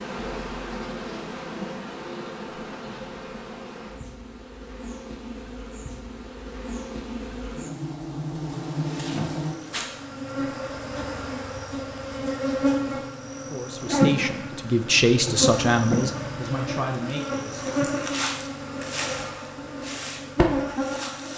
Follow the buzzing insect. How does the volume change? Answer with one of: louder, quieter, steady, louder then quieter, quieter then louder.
louder.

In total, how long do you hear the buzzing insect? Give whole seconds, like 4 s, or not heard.
21 s.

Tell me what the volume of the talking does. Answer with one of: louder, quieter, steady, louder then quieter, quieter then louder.
louder then quieter.